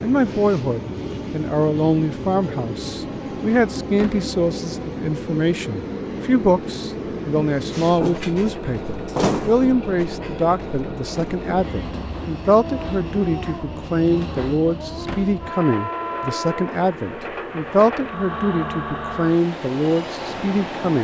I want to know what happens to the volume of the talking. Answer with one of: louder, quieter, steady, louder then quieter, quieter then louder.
steady.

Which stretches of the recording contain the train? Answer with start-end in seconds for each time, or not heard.
0.0-21.0.